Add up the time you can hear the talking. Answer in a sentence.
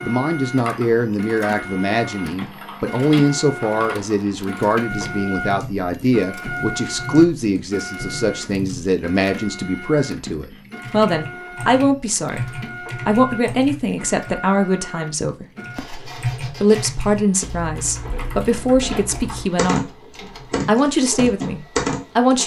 You can hear the talking for 21 seconds altogether.